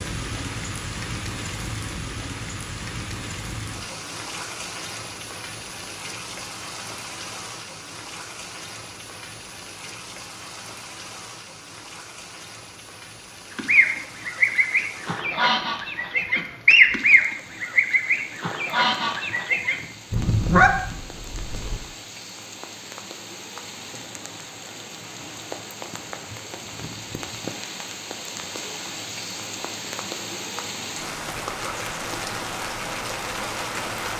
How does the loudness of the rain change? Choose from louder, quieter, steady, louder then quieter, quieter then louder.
quieter then louder.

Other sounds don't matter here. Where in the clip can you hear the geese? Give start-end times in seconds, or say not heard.
13.6-21.8.